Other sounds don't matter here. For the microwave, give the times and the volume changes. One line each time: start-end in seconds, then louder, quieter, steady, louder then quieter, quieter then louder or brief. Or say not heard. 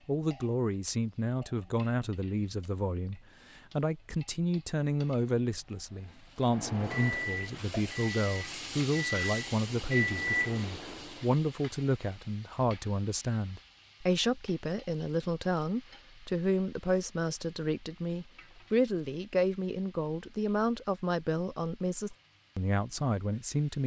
6.5-11.3 quieter then louder.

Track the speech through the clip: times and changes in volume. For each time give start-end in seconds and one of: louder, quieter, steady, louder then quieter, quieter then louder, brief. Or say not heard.
0.1-23.8 steady.